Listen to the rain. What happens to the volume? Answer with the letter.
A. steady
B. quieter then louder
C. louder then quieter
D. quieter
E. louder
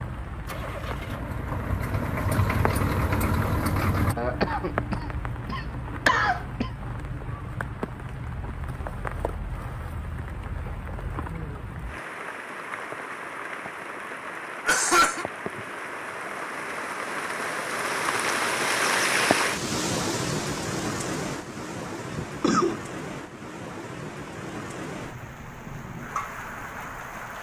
C.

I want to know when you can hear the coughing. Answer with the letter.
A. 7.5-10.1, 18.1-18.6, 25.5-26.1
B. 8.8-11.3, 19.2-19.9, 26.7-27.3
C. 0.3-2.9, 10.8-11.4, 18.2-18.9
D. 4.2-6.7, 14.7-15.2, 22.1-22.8
D.